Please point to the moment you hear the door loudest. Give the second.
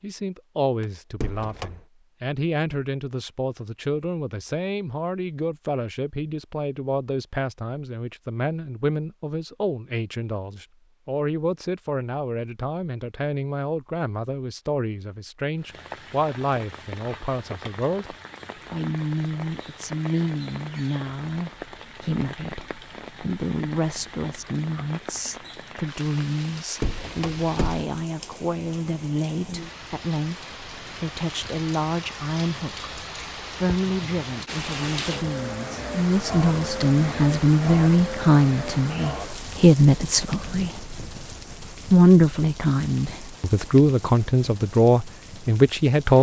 27 s.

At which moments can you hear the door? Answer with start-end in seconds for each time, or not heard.
0.8-1.8, 26.8-27.9.